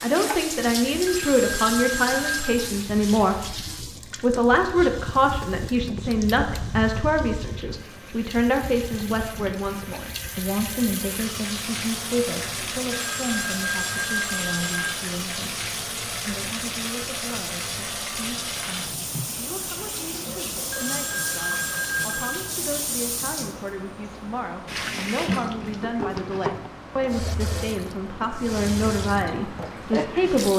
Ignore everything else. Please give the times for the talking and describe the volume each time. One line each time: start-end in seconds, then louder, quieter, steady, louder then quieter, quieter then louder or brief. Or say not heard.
0.0-30.5 quieter then louder.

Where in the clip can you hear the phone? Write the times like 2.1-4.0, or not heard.
1.1-2.6, 12.9-14.9, 20.7-22.5.